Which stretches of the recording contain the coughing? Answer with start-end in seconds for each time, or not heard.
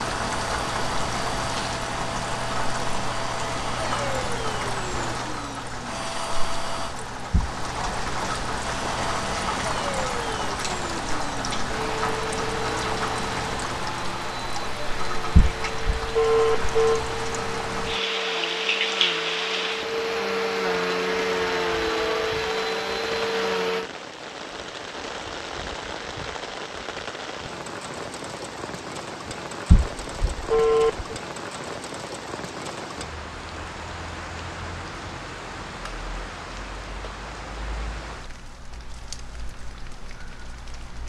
not heard.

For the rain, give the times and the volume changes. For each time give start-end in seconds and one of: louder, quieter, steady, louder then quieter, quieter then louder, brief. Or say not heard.
0.0-41.0 quieter.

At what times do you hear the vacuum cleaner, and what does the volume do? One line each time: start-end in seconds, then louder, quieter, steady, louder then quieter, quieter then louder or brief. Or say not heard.
0.0-7.0 steady
8.6-23.9 louder.